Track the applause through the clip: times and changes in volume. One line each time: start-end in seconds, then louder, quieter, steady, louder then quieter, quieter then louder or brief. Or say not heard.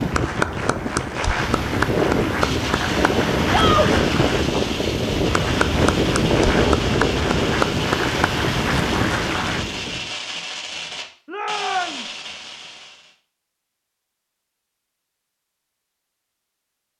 0.0-9.7 steady.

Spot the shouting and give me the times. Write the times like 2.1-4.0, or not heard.
3.5-3.9, 11.2-12.1.